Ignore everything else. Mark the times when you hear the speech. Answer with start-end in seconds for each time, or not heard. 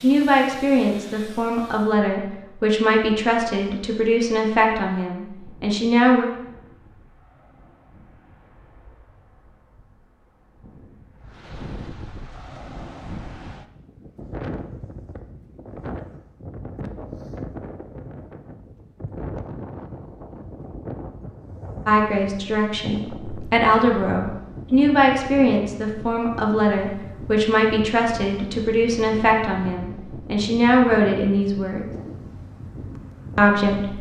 0.0-6.2, 21.9-31.9, 33.4-33.9.